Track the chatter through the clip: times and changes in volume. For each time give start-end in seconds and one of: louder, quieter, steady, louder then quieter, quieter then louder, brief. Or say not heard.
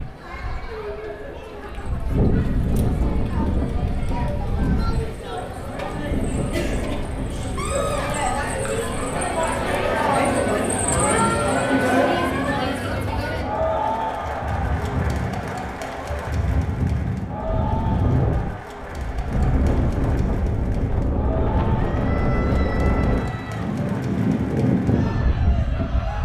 0.0-26.2 louder then quieter.